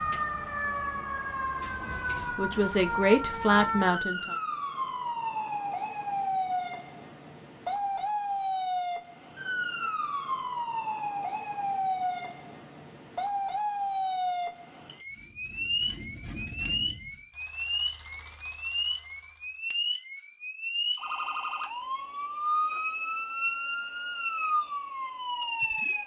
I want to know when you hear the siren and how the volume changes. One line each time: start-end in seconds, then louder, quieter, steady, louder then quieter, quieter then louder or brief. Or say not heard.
0.0-26.0 steady.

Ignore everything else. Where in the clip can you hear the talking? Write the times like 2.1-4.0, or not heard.
1.9-4.3.